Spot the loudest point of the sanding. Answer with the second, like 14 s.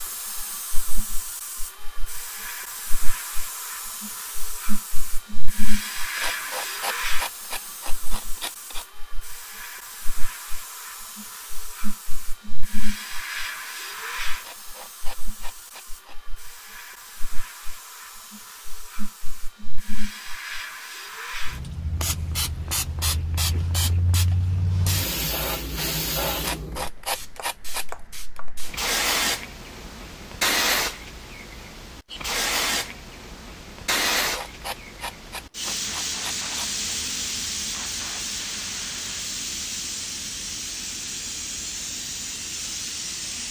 27 s.